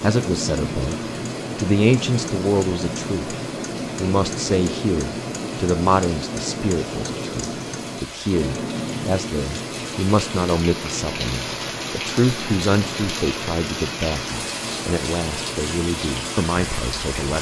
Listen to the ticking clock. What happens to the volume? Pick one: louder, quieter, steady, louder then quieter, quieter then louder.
quieter.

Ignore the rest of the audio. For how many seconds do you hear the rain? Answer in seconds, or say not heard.
17 s.